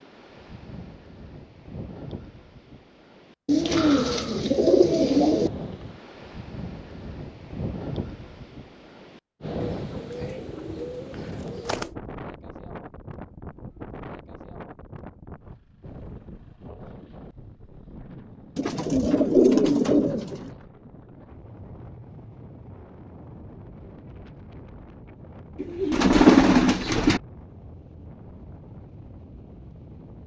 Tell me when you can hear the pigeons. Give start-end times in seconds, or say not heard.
3.5-5.5, 9.6-11.9, 18.6-20.5, 25.6-27.2.